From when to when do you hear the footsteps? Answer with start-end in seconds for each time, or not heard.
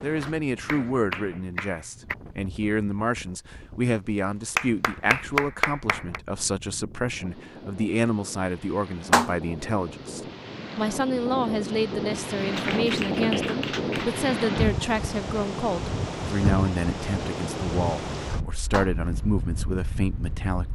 not heard.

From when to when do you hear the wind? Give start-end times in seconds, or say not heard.
0.0-20.7.